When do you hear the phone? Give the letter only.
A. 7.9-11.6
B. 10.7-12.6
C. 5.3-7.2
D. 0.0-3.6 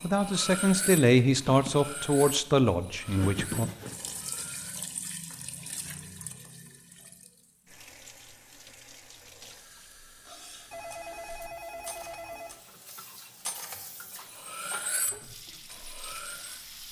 B.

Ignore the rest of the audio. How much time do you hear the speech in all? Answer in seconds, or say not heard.
4 s.